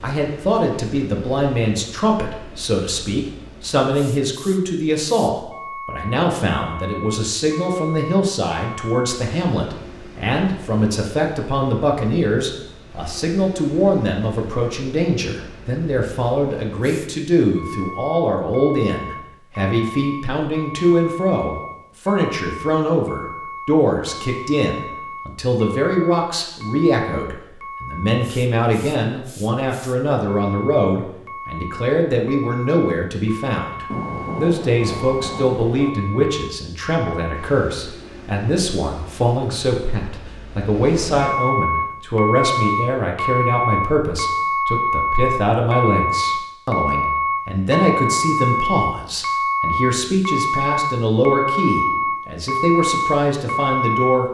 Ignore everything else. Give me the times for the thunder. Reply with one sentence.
The thunder can be heard from 33.9 to 35.9 s.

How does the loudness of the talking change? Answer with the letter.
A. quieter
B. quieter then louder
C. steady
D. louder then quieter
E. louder
C.